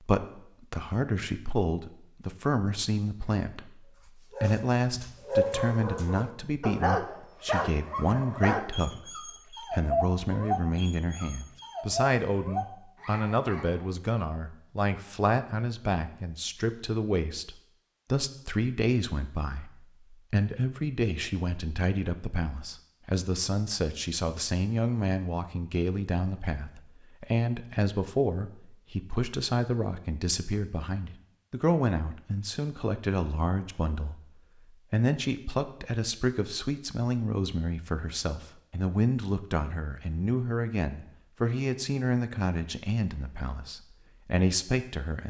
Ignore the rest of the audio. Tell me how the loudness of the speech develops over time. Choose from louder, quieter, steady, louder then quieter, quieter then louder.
steady.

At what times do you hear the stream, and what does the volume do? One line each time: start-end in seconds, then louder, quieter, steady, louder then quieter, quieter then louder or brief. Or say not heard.
not heard.